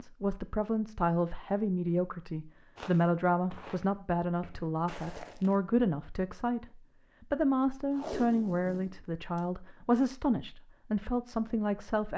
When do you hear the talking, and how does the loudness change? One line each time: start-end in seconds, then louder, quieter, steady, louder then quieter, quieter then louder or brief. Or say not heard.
0.0-12.1 steady.